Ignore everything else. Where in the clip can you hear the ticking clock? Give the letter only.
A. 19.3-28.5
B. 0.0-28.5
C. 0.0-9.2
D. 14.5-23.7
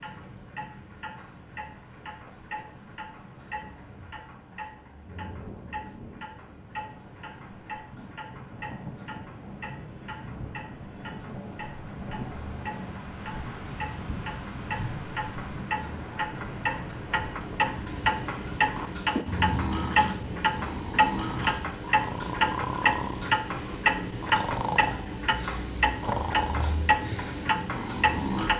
B.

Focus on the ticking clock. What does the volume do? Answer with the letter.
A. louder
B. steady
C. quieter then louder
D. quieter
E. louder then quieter
A.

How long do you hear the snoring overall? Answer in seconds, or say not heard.
9 s.